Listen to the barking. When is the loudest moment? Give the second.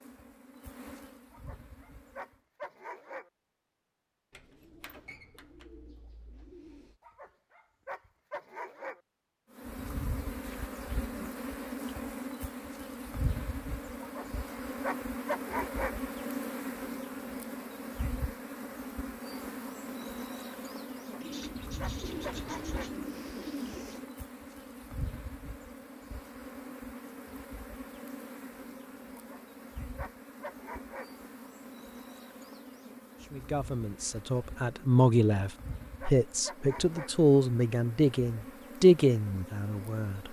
15 s.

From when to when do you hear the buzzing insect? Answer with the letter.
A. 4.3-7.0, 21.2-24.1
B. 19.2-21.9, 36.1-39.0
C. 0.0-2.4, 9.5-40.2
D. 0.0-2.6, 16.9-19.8
C.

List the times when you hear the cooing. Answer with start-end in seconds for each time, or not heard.
4.3-7.0, 21.2-24.1.